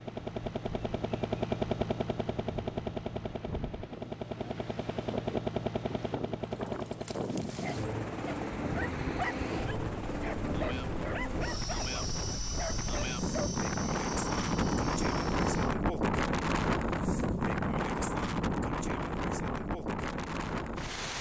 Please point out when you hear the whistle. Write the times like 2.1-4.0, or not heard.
not heard.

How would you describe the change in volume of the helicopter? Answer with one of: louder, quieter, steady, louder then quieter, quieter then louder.
quieter.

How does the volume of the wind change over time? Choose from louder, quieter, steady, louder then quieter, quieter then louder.
louder.